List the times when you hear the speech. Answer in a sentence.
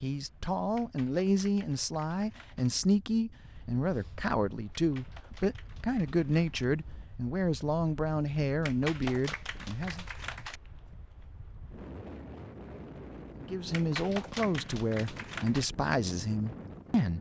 You can hear the speech from 0.0 to 10.1 s and from 13.4 to 17.1 s.